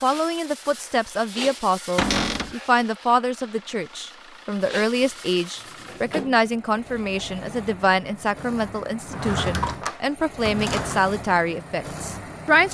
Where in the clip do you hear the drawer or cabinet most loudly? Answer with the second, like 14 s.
2 s.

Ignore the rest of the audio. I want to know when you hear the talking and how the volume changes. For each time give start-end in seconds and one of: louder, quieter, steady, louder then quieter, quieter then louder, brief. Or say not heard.
0.0-12.6 steady.